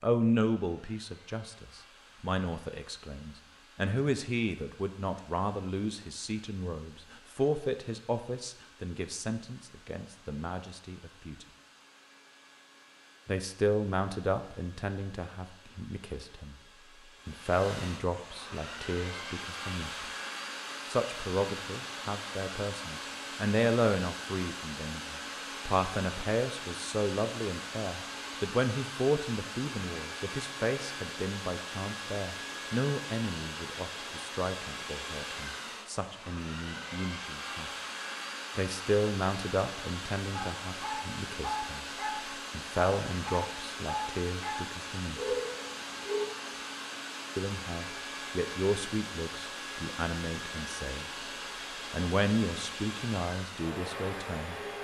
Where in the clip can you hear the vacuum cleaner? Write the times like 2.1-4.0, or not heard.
0.1-54.8.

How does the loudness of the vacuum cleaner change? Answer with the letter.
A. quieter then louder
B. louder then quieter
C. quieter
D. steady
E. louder
E.